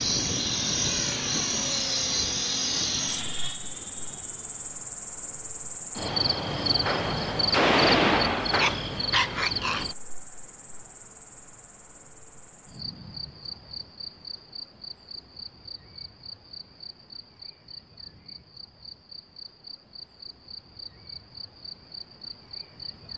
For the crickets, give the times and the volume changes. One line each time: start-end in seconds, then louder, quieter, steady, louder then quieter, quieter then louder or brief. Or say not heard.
0.0-23.1 quieter.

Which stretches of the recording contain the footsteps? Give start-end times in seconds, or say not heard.
not heard.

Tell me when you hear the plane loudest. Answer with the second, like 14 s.
1 s.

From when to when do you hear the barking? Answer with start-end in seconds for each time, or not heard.
8.6-9.9.